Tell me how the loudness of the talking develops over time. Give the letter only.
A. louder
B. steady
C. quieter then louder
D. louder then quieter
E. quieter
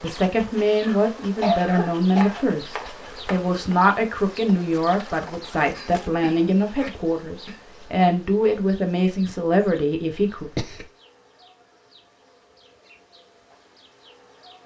B.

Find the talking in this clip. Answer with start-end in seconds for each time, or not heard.
0.0-10.5.